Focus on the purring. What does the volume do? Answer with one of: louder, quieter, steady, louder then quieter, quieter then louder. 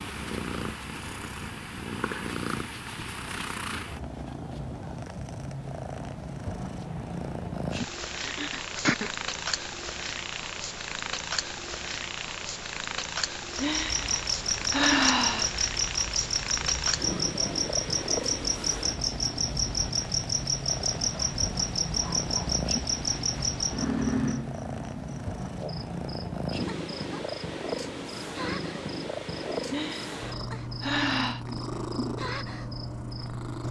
steady.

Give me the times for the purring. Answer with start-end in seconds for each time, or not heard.
0.0-33.6.